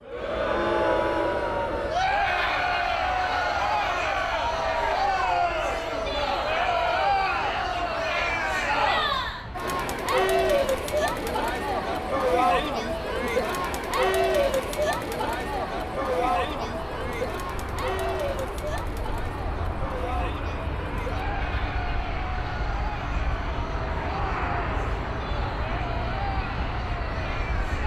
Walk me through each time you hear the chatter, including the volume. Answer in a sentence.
You can hear the chatter from 0.0 to 27.8 s, getting quieter.